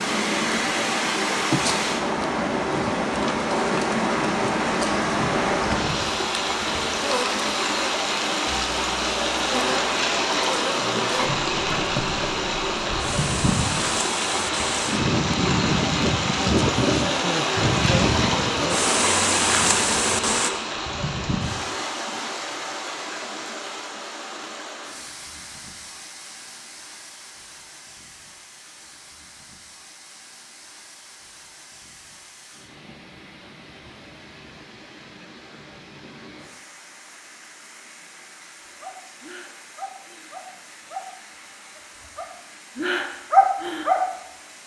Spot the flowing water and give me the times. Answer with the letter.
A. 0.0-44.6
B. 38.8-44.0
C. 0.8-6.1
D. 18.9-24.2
A.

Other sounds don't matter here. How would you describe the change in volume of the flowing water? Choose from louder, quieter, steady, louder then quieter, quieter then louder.
quieter.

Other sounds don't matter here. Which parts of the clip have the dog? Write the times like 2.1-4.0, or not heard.
38.8-44.0.